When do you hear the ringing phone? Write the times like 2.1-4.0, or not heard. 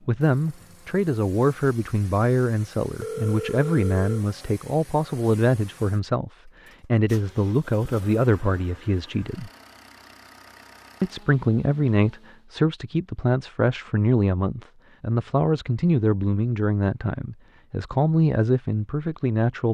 3.0-4.2.